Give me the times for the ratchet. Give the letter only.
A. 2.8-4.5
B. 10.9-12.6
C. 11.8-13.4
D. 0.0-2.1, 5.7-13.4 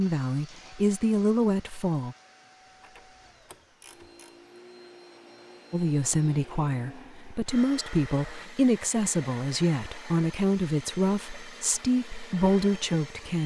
A.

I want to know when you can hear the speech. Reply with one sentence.
You can hear the speech from 0.0 to 2.1 s and from 5.7 to 13.4 s.